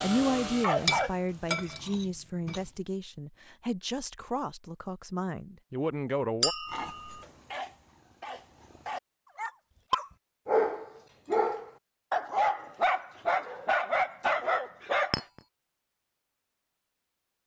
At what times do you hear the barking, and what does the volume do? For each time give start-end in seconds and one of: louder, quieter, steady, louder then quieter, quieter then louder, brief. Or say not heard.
0.0-1.6 brief
6.7-15.2 louder.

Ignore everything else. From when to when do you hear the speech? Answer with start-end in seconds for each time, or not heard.
0.0-6.5.